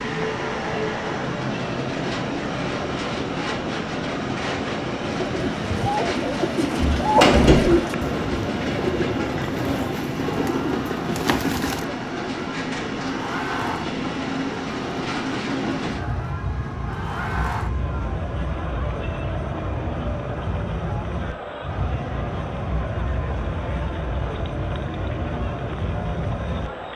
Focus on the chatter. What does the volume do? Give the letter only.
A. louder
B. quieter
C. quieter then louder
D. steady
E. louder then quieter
D.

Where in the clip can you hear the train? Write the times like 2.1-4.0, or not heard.
0.0-26.9.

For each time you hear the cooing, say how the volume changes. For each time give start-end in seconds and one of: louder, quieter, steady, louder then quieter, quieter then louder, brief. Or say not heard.
5.2-11.8 louder then quieter.